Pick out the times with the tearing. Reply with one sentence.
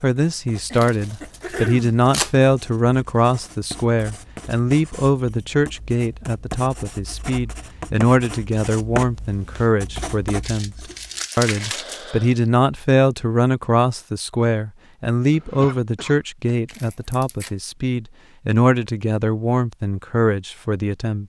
The tearing can be heard from 0.7 to 2.4 s, from 10.4 to 12.2 s and from 16.6 to 17.5 s.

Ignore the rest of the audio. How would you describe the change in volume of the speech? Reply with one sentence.
The loudness of the speech stays about the same.